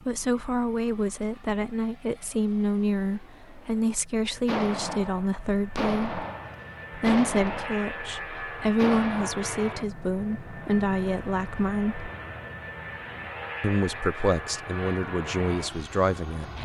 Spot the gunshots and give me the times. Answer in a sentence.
You can hear the gunshots from 4.5 to 9.3 s.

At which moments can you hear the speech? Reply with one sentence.
You can hear the speech from 0.1 to 6.2 s, from 6.9 to 12.1 s and from 13.6 to 16.6 s.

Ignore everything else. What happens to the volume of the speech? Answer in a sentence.
The loudness of the speech stays about the same.